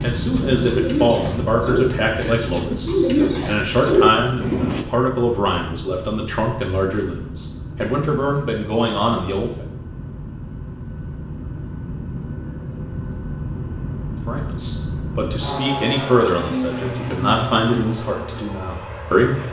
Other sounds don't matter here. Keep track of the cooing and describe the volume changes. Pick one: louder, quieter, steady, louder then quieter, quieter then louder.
quieter then louder.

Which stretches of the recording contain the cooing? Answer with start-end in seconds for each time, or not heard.
0.0-4.8.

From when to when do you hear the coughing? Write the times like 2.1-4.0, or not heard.
not heard.